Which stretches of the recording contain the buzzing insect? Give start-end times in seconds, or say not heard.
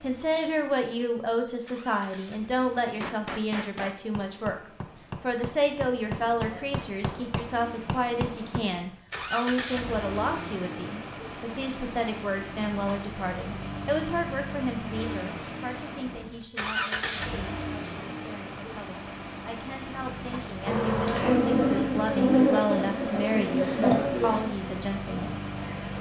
20.6-25.9.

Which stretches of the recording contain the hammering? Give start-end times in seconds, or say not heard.
2.8-8.7.